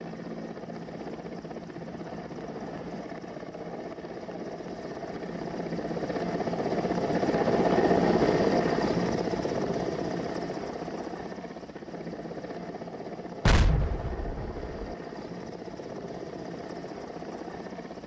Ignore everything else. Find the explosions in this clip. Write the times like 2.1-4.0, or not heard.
13.4-14.9.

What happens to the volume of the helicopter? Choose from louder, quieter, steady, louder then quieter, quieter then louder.
louder then quieter.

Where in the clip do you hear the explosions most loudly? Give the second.
14 s.